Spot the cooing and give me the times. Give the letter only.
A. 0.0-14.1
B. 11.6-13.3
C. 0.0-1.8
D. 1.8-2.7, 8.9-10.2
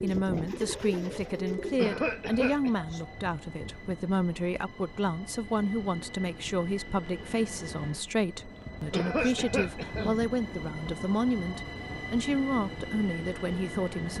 C.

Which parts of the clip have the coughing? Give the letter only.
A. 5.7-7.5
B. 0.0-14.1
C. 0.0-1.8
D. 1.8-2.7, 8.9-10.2
D.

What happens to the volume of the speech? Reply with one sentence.
The volume of the speech stays about the same.